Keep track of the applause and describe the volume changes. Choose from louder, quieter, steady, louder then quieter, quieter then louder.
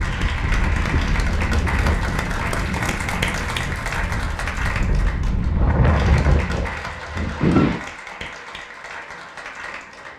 quieter.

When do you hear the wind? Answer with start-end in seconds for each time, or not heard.
0.0-7.8.